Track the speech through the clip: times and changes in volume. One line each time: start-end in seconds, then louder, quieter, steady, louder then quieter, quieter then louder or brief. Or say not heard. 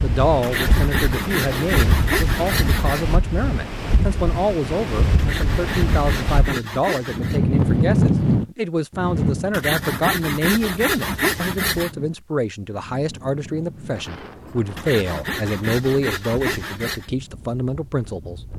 0.0-18.4 steady.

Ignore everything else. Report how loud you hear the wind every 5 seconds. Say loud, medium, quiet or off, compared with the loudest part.
medium, loud, quiet, quiet.